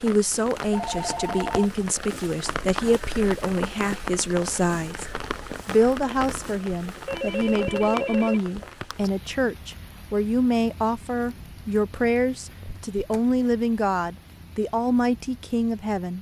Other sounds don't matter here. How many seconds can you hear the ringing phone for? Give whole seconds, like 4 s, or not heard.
4 s.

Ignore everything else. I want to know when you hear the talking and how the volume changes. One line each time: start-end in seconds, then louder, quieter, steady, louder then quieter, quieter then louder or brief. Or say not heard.
0.0-16.1 steady.